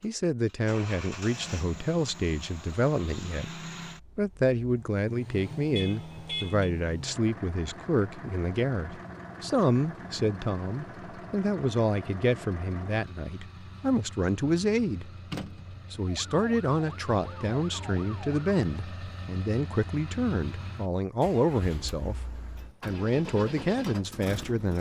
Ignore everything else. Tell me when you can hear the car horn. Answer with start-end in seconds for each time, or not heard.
5.8-6.7.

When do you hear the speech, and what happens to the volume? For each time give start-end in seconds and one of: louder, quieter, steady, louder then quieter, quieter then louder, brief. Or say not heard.
0.0-15.1 steady
15.9-24.7 steady.